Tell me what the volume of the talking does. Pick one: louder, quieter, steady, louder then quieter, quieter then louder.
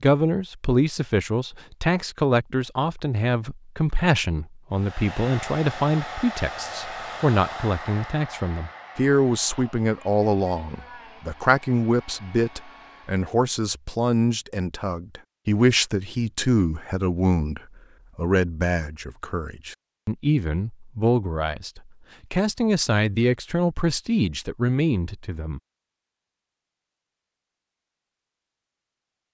steady.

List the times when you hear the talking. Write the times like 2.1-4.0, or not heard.
0.0-25.6.